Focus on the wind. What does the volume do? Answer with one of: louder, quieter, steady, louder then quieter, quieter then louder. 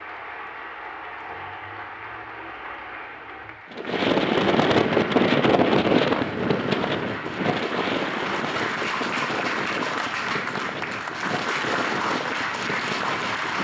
quieter.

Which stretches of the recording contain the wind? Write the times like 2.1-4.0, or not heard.
3.7-13.5.